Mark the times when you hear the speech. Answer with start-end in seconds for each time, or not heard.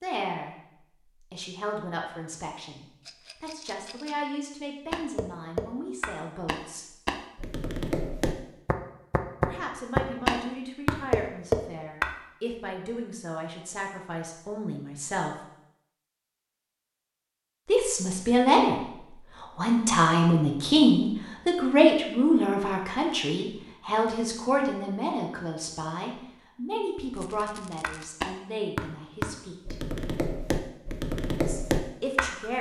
0.0-6.8, 9.4-15.3, 17.6-29.8, 31.4-32.5.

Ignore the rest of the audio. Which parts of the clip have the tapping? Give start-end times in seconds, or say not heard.
4.9-12.1, 27.8-32.5.